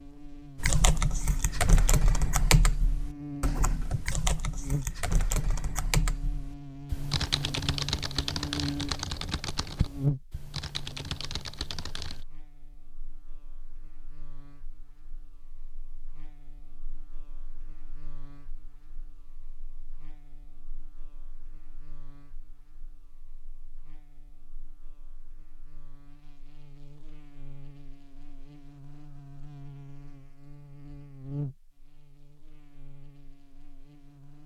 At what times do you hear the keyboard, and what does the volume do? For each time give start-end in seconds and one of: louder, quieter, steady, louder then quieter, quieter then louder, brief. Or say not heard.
0.6-12.2 quieter.